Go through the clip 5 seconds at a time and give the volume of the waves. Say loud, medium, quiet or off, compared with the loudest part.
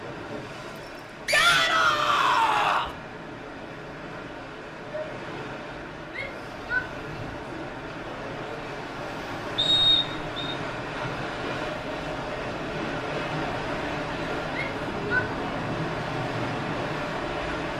medium, medium, loud, loud.